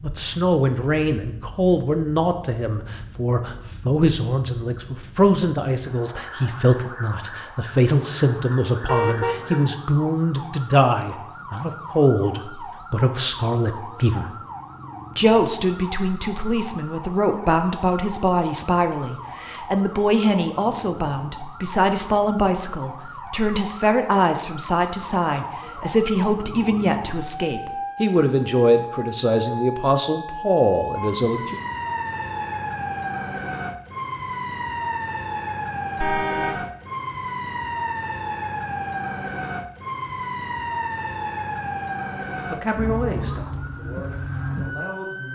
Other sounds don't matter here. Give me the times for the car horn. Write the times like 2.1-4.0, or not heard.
8.8-9.7, 36.0-36.6.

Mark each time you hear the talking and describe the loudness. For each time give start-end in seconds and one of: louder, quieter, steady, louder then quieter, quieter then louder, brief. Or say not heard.
0.0-14.3 steady
15.2-31.6 steady
42.5-45.2 brief.